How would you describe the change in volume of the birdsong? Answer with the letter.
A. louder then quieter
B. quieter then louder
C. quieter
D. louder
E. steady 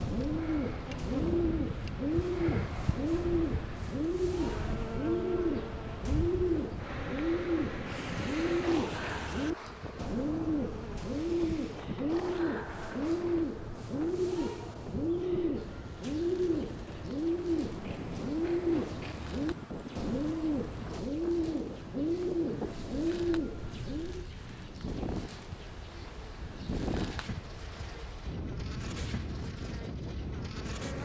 E.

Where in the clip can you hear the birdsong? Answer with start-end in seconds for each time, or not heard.
0.0-24.2.